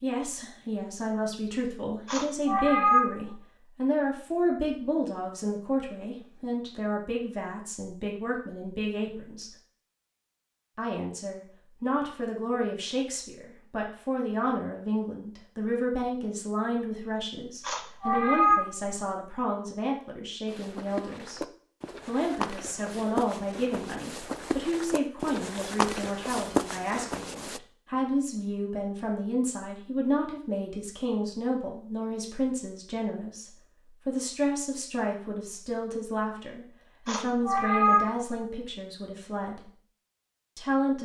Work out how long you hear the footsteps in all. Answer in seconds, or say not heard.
7 s.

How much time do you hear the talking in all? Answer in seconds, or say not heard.
38 s.